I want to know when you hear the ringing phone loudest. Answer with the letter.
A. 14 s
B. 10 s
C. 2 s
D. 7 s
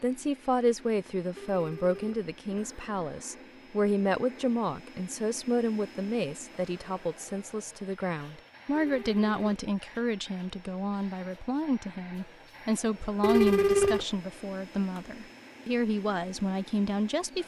A.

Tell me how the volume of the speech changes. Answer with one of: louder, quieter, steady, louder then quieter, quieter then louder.
steady.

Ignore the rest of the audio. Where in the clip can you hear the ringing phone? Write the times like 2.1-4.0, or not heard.
1.4-2.9, 8.8-9.6, 13.2-14.1.